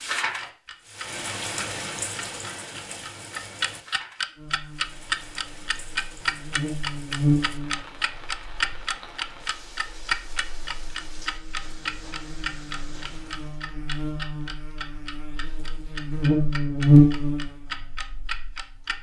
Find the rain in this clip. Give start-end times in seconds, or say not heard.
0.0-13.7.